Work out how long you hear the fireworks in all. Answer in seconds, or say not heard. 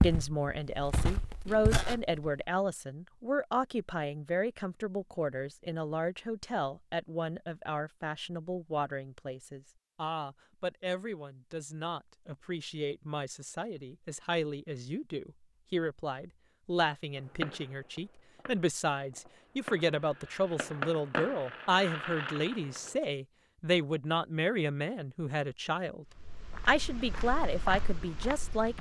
6 s.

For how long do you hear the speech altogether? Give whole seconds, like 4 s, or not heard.
28 s.